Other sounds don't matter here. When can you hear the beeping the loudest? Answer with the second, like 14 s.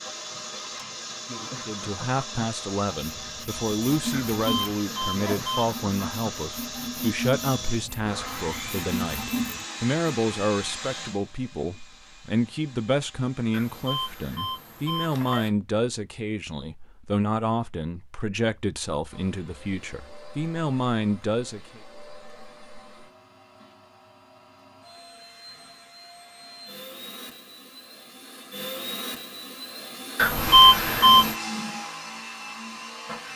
31 s.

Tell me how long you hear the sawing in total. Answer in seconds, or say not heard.
7 s.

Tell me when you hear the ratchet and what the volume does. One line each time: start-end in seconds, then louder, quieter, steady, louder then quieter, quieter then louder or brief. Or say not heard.
not heard.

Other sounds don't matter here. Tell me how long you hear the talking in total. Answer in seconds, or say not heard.
20 s.